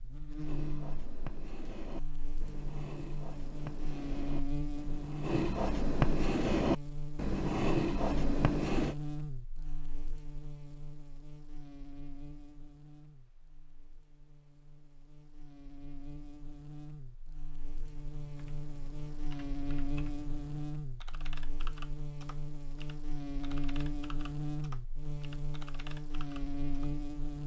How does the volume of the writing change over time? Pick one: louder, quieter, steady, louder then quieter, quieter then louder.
louder.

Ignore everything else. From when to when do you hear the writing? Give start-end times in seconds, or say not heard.
0.4-8.9.